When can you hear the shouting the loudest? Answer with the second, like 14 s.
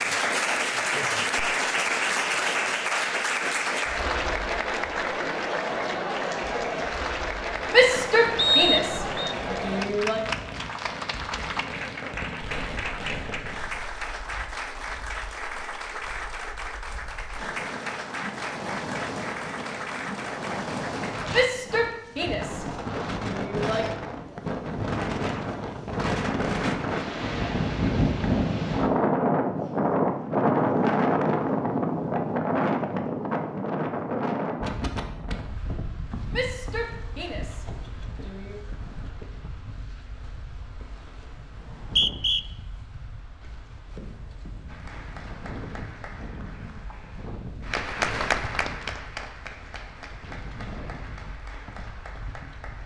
8 s.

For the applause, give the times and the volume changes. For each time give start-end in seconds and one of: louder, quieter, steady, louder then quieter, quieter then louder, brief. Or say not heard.
0.0-21.4 quieter
44.6-52.8 louder then quieter.